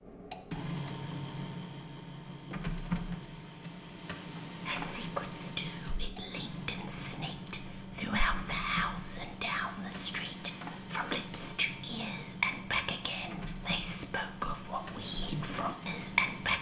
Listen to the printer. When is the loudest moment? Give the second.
3 s.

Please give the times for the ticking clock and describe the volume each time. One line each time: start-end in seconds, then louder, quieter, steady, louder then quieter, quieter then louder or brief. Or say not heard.
not heard.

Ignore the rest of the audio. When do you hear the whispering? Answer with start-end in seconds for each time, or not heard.
4.7-16.5.